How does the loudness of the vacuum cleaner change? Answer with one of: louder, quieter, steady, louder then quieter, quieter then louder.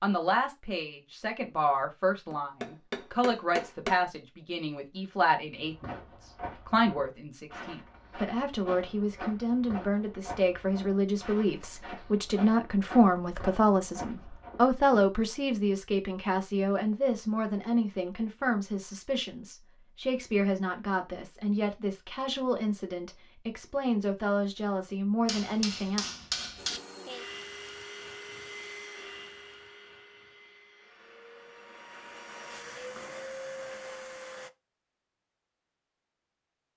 quieter then louder.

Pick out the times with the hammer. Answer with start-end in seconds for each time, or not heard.
2.3-4.0, 25.2-26.8.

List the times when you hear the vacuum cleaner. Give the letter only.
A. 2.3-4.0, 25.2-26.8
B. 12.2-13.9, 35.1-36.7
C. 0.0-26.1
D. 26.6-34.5
D.